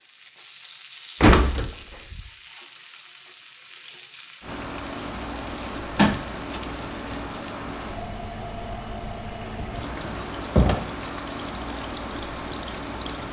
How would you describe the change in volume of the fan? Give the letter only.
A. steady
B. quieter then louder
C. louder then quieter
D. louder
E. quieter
A.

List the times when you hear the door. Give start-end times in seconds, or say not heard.
1.2-2.2, 6.0-6.6, 9.4-10.8.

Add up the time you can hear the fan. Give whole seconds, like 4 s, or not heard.
9 s.